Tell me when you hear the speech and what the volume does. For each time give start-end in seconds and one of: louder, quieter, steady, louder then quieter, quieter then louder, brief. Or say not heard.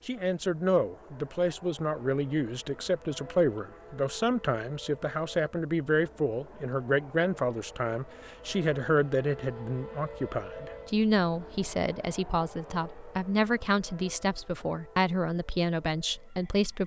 0.1-16.8 steady.